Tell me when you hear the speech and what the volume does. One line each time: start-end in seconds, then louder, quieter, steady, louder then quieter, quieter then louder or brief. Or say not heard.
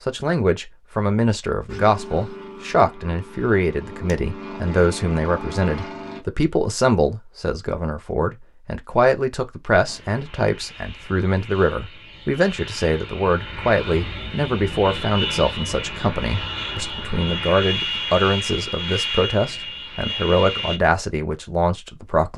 0.1-22.3 steady.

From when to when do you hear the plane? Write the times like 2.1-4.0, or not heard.
1.6-6.2, 9.8-20.8.